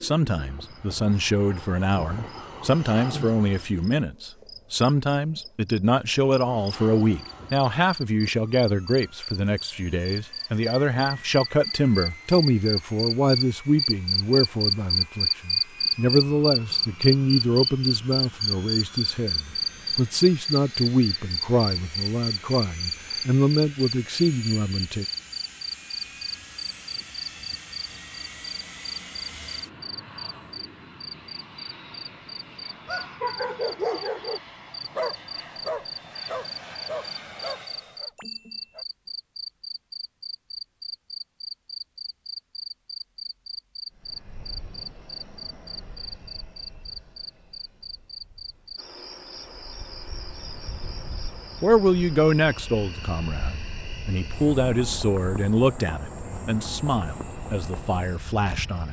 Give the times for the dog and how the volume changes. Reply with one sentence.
You can hear the dog from 32.9 to 38.9 s, getting quieter.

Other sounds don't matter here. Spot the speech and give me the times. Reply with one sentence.
The speech can be heard from 0.0 to 25.1 s and from 51.6 to 58.8 s.